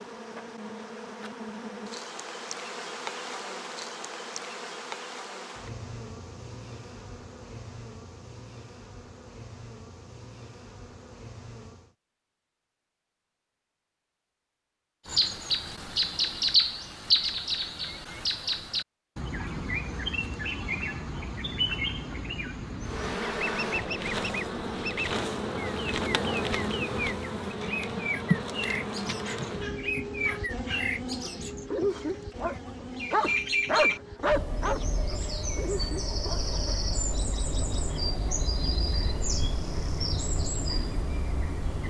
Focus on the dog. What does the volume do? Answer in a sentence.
The loudness of the dog goes up, then down.